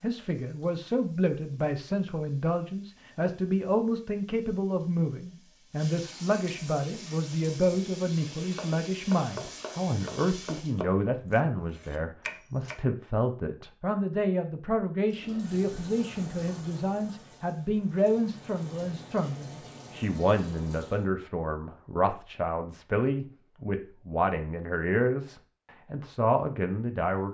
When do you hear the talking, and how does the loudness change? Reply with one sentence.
You can hear the talking from 0.0 to 27.2 s, at a steady volume.